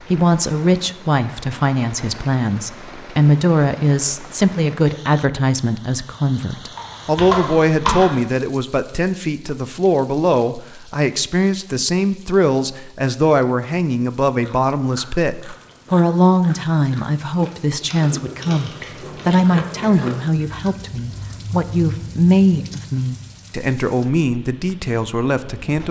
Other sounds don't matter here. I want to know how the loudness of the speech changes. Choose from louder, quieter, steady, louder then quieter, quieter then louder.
steady.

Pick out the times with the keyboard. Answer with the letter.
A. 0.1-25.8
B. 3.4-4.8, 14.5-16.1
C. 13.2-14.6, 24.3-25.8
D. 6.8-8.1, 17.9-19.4
D.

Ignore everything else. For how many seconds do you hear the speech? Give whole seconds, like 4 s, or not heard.
26 s.